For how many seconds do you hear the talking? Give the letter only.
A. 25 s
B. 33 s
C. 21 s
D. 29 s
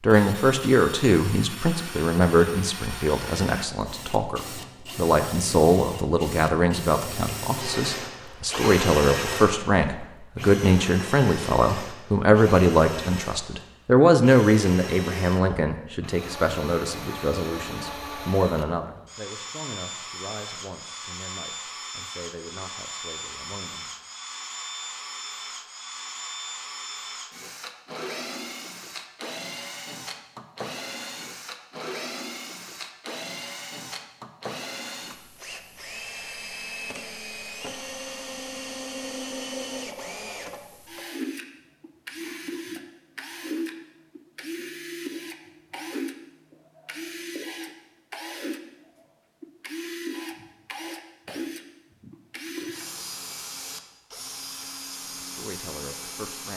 A.